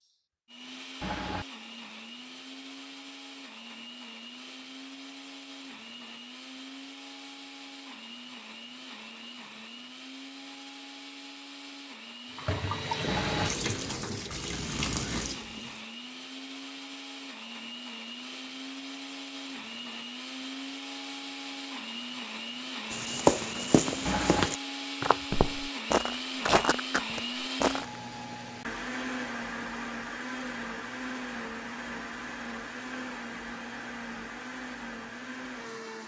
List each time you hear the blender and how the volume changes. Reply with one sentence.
You can hear the blender from 0.0 to 36.0 s, getting louder.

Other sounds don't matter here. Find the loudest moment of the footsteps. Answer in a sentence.
The loudest moment of the footsteps is at 23 seconds.